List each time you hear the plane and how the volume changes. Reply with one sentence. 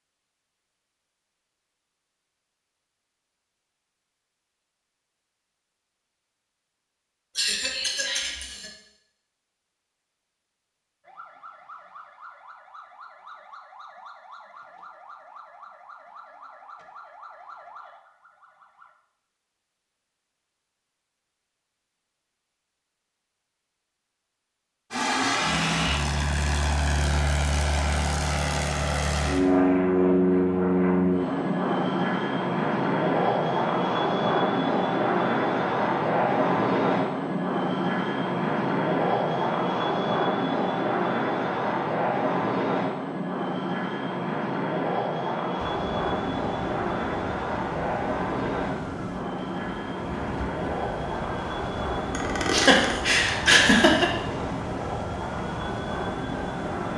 The plane can be heard from 24.9 to 56.9 s, getting quieter.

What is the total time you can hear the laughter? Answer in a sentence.
The laughter can be heard for 3 seconds in total.